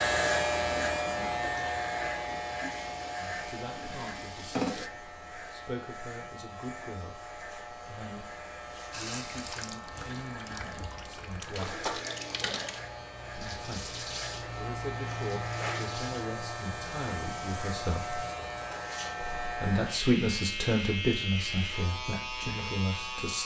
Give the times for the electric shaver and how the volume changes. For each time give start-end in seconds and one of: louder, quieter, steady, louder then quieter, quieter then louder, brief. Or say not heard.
0.0-23.4 quieter then louder.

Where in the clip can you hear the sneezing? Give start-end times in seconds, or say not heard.
not heard.